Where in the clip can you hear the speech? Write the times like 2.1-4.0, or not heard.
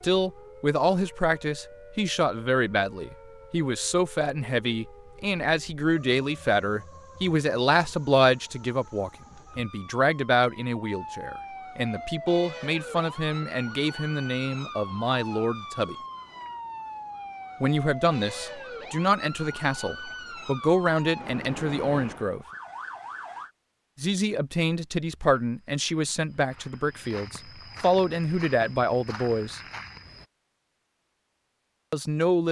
0.0-15.9, 17.6-22.4, 24.0-29.6, 31.9-32.4.